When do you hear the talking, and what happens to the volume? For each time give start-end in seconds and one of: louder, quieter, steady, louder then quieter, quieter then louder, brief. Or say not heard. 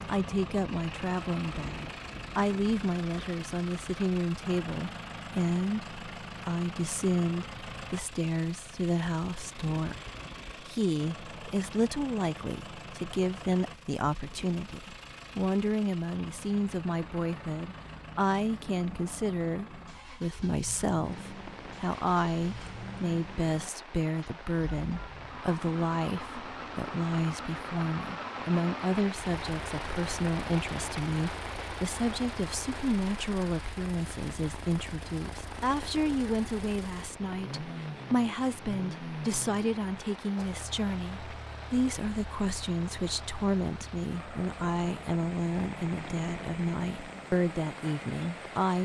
0.1-48.8 steady.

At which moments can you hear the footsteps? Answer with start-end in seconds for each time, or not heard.
not heard.